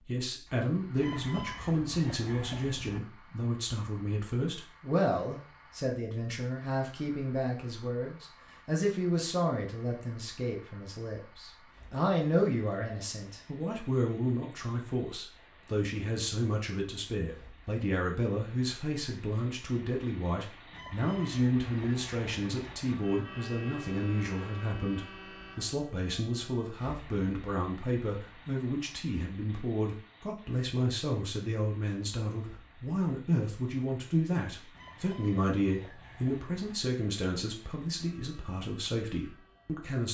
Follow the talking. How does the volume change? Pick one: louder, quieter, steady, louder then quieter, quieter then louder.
steady.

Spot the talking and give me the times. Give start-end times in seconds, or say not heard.
0.1-40.0.